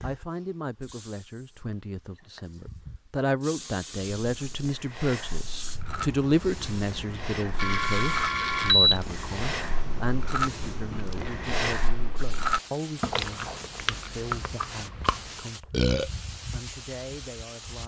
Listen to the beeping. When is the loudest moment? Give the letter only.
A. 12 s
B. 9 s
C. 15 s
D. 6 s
B.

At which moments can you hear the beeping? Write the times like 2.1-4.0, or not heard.
7.5-9.0.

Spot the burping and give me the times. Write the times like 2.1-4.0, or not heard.
15.7-16.1.